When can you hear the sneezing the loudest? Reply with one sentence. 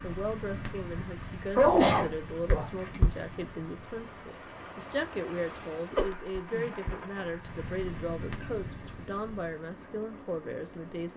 The loudest moment of the sneezing is at 2 seconds.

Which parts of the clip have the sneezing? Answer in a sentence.
You can hear the sneezing from 1.6 to 2.7 s and from 6.0 to 6.7 s.